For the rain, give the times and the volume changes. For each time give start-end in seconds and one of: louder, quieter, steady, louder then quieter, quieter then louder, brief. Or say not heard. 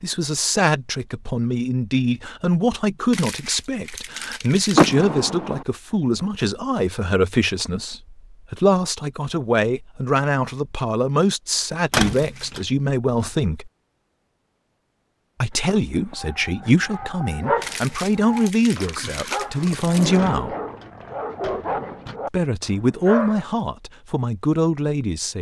not heard.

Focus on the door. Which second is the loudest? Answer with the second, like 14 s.
5 s.